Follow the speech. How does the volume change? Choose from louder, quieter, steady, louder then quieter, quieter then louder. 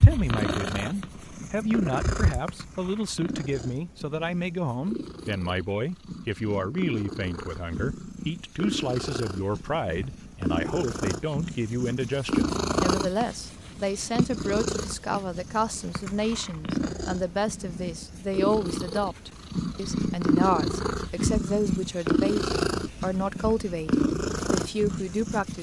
steady.